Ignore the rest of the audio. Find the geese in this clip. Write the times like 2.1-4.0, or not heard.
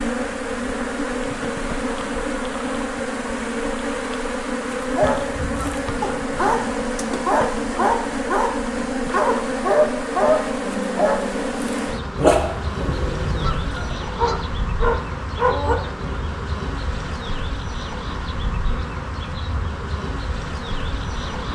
5.0-6.7, 12.8-14.6.